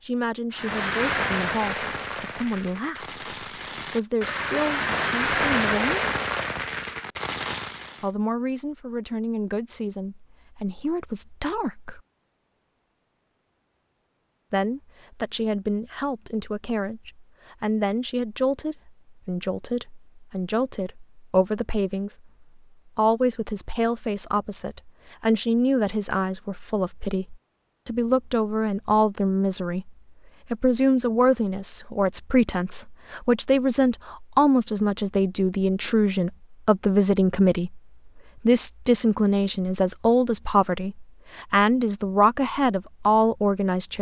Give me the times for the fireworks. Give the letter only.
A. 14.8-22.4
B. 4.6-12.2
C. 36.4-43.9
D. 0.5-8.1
D.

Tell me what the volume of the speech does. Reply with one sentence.
The volume of the speech goes up.